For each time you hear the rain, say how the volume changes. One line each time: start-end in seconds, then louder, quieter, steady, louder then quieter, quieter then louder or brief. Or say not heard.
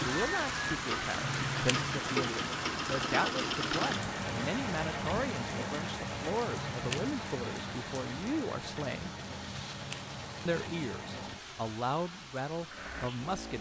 0.0-13.5 quieter.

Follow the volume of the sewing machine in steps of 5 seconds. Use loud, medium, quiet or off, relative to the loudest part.
loud, medium, medium.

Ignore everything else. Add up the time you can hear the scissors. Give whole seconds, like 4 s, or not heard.
2 s.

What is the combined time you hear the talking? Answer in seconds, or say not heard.
12 s.